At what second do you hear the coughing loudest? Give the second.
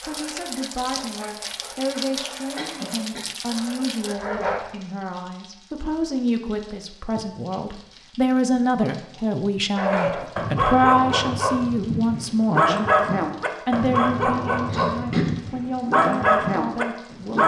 15 s.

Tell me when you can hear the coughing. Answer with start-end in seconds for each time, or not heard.
2.5-3.2, 14.7-15.2.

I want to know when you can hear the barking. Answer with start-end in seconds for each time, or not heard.
0.0-4.6, 9.8-17.4.